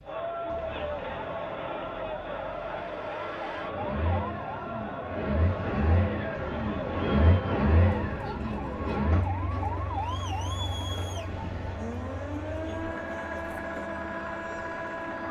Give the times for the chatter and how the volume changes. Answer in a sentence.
You can hear the chatter from 0.0 to 15.2 s, getting quieter.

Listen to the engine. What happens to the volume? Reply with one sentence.
The loudness of the engine goes up, then down.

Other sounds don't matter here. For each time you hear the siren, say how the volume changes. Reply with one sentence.
The siren can be heard from 0.0 to 15.2 s, getting louder.